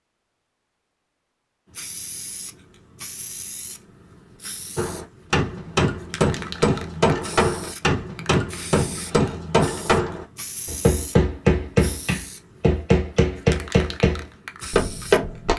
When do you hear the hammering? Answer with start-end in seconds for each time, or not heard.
4.8-15.5.